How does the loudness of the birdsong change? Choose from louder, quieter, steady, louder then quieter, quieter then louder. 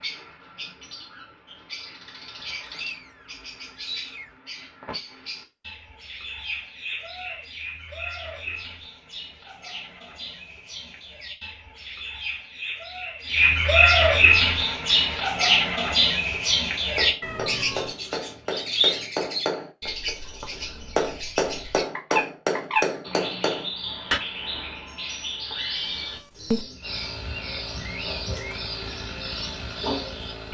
louder then quieter.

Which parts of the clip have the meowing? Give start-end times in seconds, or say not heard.
2.6-4.3, 17.2-18.0, 25.8-26.6.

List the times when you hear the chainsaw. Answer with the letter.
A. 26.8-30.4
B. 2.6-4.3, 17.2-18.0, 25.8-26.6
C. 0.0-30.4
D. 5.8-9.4
A.